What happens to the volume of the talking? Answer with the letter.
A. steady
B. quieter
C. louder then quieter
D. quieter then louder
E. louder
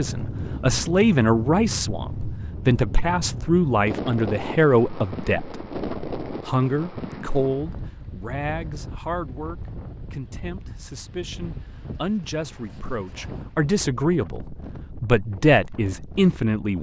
D.